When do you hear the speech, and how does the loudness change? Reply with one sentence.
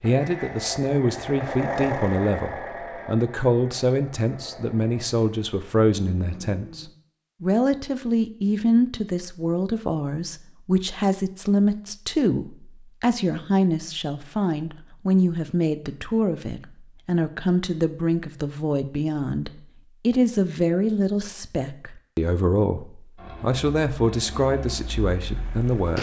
You can hear the speech from 0.0 to 25.9 s, at a steady volume.